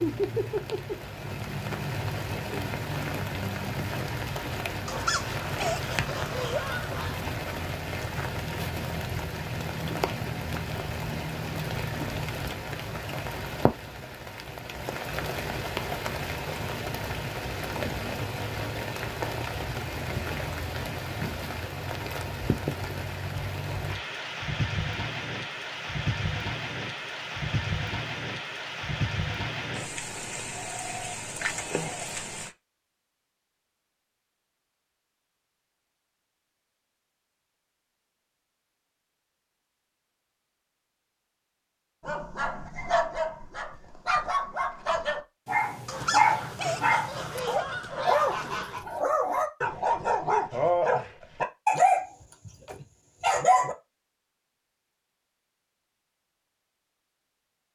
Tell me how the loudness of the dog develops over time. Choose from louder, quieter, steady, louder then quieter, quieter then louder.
louder.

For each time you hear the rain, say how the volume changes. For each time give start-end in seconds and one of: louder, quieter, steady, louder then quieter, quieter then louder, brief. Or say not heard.
0.0-32.5 steady.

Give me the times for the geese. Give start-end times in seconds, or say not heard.
4.8-7.2, 45.9-48.9.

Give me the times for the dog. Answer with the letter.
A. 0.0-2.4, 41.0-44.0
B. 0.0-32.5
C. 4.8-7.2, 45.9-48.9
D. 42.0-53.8
D.